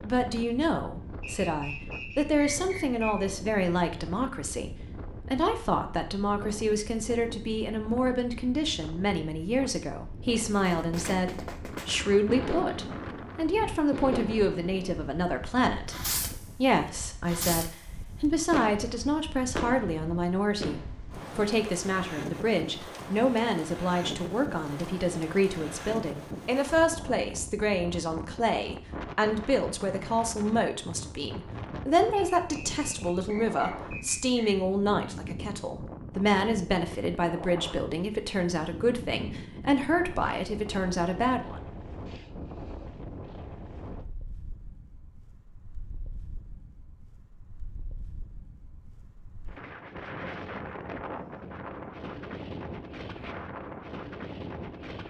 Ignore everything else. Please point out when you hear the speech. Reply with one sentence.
You can hear the speech from 0.0 to 41.6 s.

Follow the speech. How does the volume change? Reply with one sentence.
The volume of the speech stays about the same.